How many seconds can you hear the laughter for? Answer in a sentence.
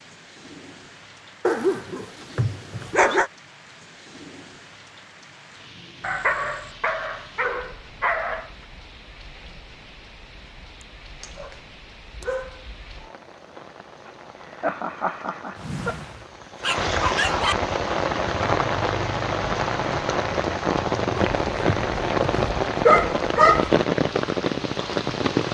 You can hear the laughter for 2 seconds altogether.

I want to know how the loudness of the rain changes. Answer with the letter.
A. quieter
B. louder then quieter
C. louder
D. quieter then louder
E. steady
C.